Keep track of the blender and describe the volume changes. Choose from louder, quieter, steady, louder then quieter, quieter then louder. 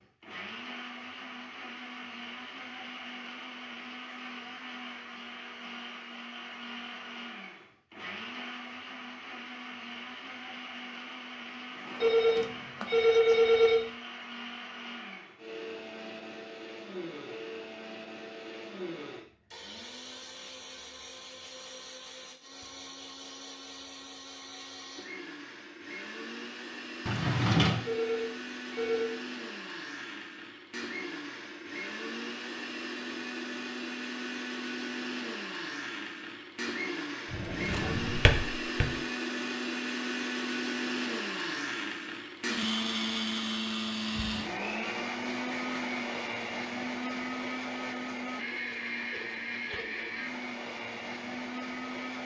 louder.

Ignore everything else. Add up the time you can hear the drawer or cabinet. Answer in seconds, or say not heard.
4 s.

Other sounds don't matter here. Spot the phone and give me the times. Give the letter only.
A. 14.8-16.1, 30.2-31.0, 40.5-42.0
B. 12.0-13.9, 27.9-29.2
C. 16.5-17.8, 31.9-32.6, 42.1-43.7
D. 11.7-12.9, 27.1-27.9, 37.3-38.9
B.